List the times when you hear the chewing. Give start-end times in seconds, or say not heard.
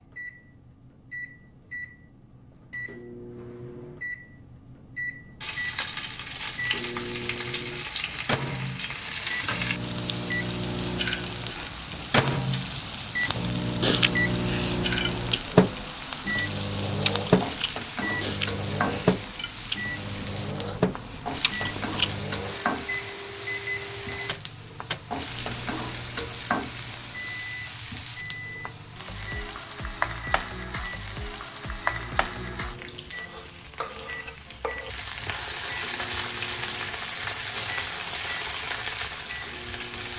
13.8-22.2.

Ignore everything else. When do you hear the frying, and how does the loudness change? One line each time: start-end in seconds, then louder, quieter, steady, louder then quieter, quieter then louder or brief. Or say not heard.
5.4-40.1 steady.